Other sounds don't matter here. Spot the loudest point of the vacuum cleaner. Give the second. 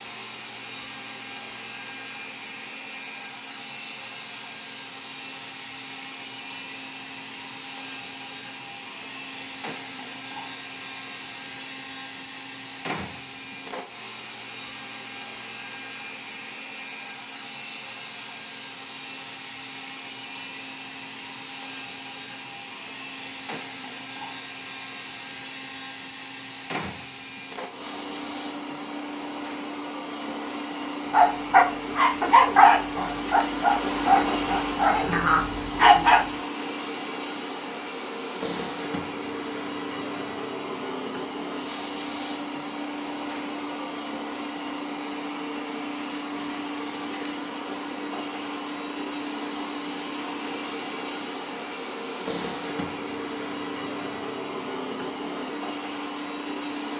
34 s.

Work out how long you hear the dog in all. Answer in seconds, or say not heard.
5 s.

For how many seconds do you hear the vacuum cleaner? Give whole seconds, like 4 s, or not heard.
57 s.